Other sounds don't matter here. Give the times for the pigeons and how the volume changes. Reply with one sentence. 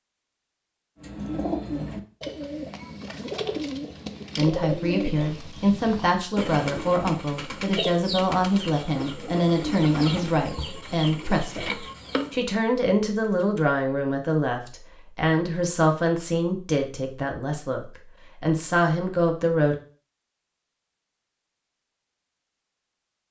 The pigeons can be heard from 1.0 to 12.4 s, at a steady volume.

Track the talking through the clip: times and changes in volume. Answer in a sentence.
The talking can be heard from 4.3 to 19.8 s, at a steady volume.